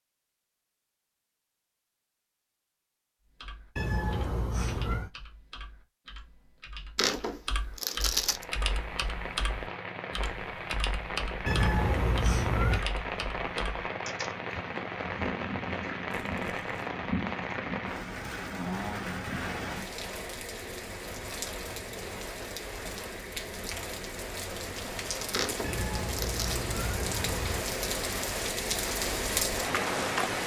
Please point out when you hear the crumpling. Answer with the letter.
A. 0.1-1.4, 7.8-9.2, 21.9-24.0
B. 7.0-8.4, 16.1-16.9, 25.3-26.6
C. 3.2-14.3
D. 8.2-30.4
B.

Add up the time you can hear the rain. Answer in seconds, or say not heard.
22 s.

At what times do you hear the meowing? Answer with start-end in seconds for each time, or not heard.
3.8-5.1, 11.4-12.8, 25.6-27.6.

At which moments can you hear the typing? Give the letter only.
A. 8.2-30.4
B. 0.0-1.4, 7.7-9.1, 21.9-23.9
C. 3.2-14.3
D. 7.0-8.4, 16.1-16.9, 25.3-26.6
C.